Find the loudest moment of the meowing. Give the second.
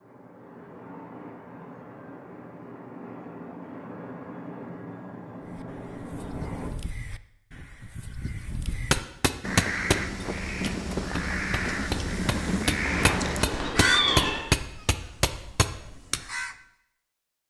14 s.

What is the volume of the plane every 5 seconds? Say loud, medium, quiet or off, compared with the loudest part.
loud, loud, off, off.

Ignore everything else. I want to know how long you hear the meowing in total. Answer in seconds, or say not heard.
2 s.